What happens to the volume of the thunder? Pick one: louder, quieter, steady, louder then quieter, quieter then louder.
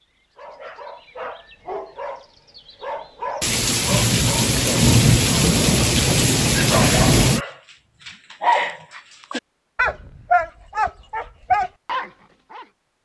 steady.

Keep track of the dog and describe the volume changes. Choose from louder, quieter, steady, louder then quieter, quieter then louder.
louder.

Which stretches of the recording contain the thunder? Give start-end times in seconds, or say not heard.
3.4-7.5.